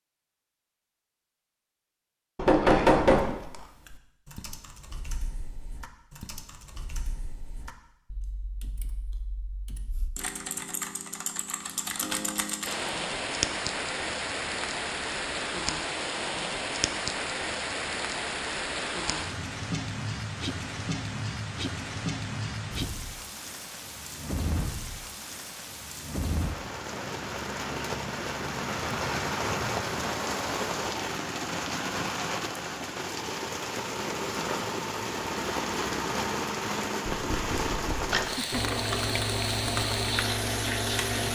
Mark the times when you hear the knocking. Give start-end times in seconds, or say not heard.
2.4-3.4, 37.1-38.1.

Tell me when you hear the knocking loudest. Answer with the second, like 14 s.
3 s.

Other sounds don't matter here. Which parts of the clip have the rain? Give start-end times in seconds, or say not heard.
12.7-41.3.